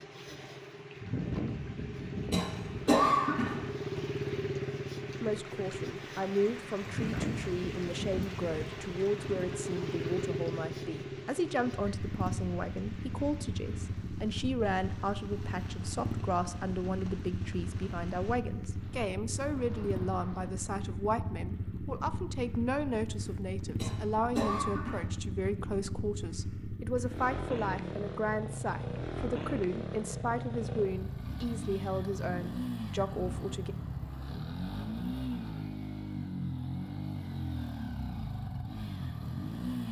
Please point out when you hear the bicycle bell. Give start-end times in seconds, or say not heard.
not heard.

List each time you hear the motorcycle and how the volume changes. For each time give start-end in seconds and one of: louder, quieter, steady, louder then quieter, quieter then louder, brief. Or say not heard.
0.0-39.8 steady.